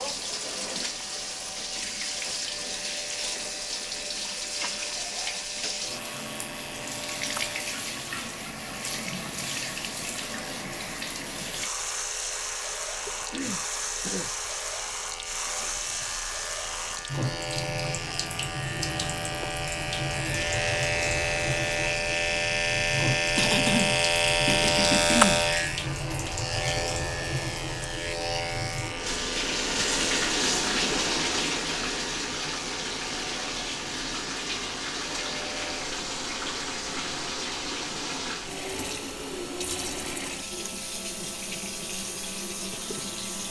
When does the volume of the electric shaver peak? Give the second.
25 s.